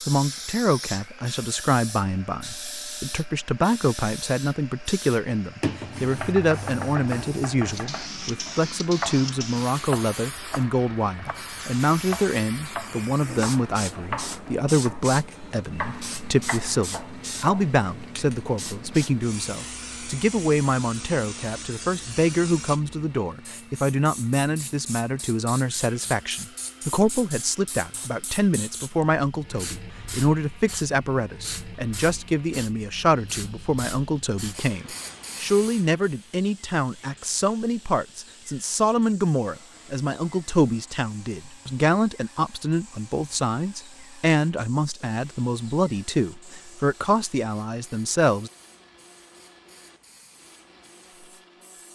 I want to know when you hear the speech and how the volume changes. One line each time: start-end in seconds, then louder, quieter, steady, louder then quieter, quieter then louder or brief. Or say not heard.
0.1-48.5 steady.